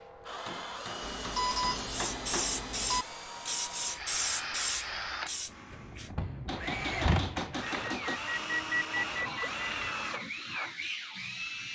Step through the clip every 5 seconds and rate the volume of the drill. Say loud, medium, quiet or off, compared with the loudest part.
medium, loud, loud.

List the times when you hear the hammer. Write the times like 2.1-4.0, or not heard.
0.5-2.6, 6.5-8.2.